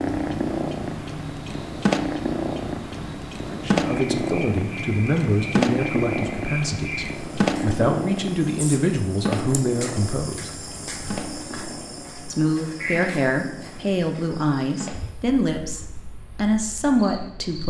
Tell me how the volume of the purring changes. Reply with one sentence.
The volume of the purring goes down.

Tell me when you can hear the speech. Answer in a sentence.
You can hear the speech from 3.5 to 10.5 s and from 12.3 to 17.6 s.